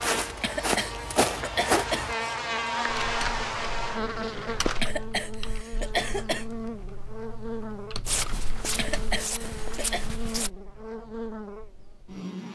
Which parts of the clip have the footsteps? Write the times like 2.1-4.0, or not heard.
0.0-2.1, 8.0-10.5.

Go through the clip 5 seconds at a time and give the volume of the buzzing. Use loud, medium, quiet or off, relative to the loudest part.
loud, medium, medium.